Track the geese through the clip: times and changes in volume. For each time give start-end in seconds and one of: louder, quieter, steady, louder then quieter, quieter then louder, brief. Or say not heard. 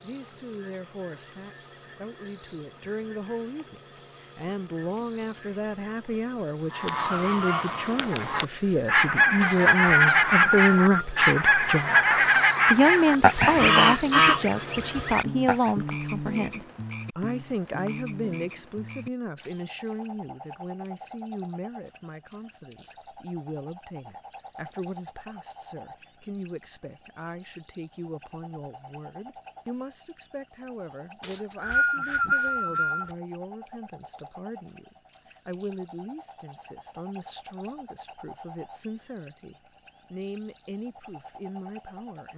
6.7-15.7 louder.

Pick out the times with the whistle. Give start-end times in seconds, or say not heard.
9.4-11.1, 31.2-33.1.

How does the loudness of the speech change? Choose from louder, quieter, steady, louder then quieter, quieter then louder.
louder then quieter.